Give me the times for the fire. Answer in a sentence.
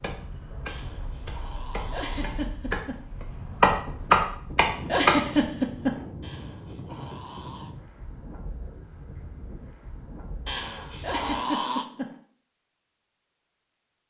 You can't hear the fire here.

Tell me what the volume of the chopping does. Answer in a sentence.
The loudness of the chopping goes up.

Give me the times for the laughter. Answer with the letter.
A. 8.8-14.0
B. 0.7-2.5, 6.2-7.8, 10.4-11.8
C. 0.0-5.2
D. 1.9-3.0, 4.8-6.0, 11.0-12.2
D.